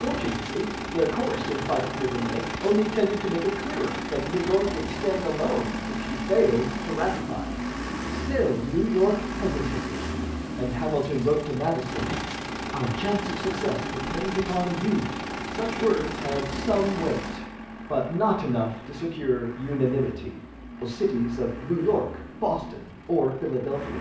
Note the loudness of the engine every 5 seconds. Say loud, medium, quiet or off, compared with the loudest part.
loud, loud, loud, loud, medium.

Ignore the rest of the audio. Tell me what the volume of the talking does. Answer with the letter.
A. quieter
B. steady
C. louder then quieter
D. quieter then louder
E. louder
B.